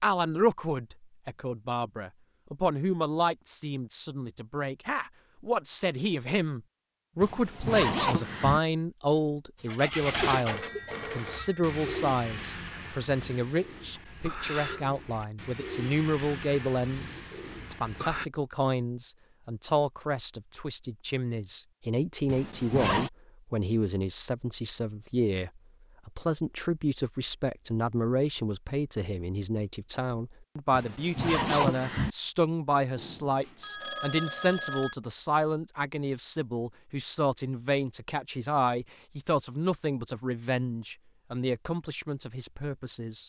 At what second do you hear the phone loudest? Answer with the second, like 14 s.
34 s.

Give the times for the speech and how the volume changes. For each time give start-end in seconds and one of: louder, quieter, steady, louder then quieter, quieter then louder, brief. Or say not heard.
0.0-43.2 steady.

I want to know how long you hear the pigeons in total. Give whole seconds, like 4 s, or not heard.
9 s.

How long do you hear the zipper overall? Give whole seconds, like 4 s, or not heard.
4 s.